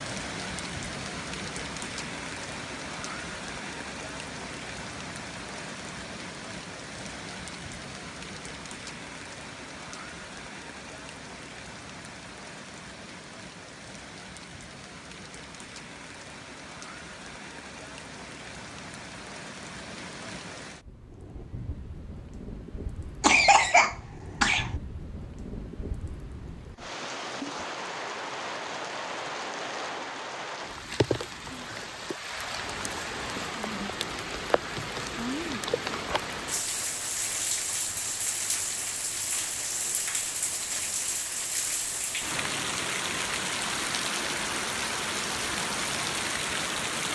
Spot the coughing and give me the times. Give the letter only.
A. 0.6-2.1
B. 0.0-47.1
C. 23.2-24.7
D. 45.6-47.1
C.